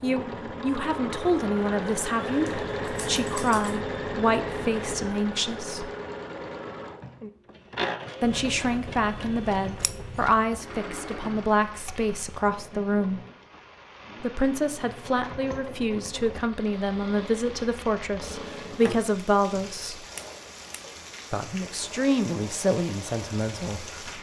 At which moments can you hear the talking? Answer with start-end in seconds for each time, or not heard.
0.0-5.9, 8.2-13.2, 14.2-20.1, 21.3-24.1.